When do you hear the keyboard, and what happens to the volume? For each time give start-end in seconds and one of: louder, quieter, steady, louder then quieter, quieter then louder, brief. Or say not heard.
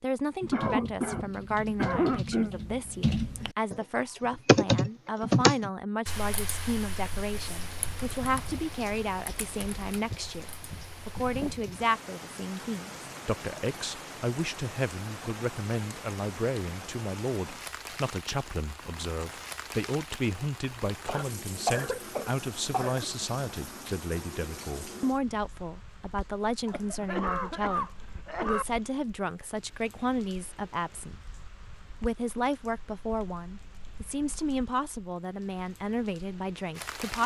0.4-11.4 louder then quieter.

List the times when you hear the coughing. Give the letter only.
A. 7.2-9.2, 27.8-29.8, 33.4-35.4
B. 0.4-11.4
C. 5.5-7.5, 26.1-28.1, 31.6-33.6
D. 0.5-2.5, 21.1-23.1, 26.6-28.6
D.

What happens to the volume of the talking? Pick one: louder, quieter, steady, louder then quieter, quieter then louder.
steady.